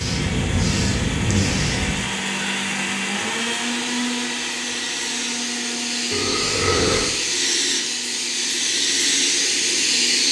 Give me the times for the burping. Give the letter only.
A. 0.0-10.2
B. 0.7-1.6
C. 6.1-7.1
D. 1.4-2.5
C.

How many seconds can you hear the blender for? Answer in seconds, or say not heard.
10 s.